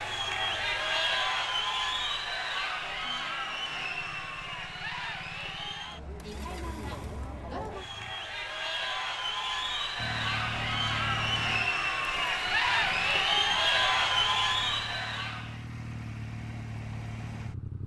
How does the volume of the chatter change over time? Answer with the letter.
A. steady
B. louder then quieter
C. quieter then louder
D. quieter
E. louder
C.